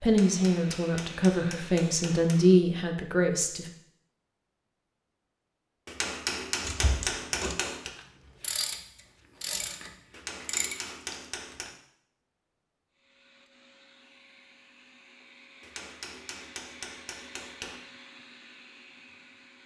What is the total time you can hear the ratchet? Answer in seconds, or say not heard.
5 s.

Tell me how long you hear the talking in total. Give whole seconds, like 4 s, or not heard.
4 s.